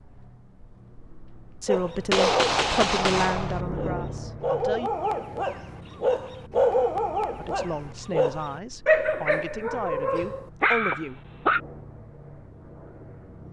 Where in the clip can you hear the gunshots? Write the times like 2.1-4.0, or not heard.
2.1-3.6.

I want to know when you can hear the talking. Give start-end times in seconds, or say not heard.
1.6-4.9, 7.3-11.2.